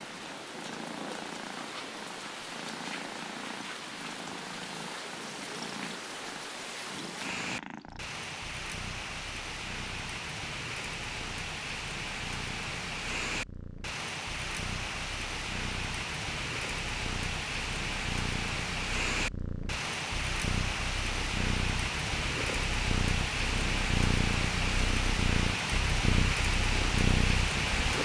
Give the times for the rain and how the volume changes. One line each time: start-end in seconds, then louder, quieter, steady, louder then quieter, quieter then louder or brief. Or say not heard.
0.0-28.0 louder.